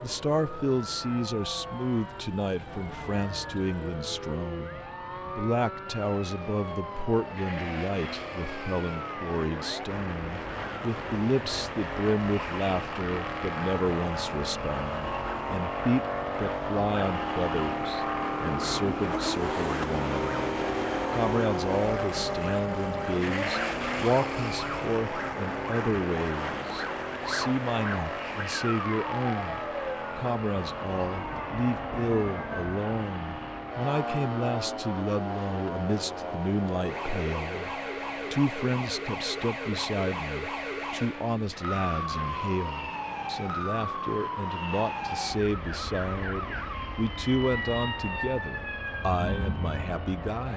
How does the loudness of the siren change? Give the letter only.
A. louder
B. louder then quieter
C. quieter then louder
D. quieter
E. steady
A.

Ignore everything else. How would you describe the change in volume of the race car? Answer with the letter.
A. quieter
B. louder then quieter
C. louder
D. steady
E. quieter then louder
B.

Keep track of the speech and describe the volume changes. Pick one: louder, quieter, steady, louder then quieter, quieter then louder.
steady.